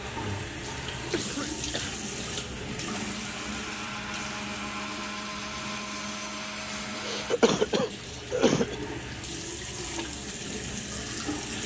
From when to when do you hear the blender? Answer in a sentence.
You can hear the blender from 2.9 to 7.3 s.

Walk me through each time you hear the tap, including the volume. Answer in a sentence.
You can hear the tap from 0.0 to 11.6 s, getting quieter then louder.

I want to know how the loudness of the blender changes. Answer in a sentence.
The volume of the blender stays about the same.